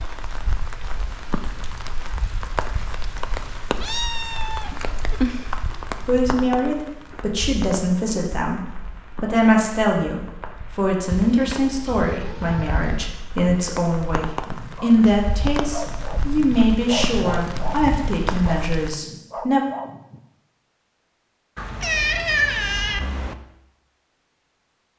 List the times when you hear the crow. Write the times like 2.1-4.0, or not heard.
not heard.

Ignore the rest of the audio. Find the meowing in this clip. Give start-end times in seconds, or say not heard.
3.8-5.5, 11.1-13.1, 21.6-23.4.